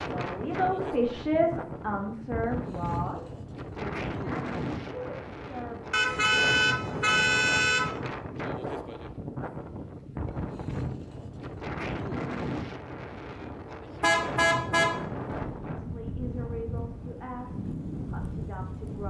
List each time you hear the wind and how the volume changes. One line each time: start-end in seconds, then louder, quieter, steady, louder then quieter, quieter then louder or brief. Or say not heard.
0.0-19.0 steady.